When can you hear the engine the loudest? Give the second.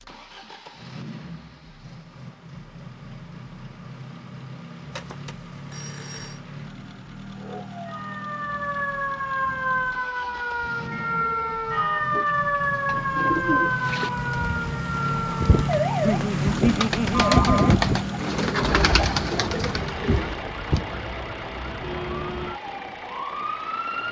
16 s.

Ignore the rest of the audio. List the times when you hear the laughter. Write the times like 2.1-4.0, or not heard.
16.0-17.8.